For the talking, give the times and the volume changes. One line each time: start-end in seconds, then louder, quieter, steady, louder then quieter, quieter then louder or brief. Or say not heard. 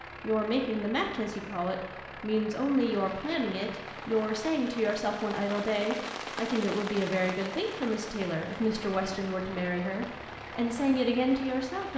0.2-11.9 steady.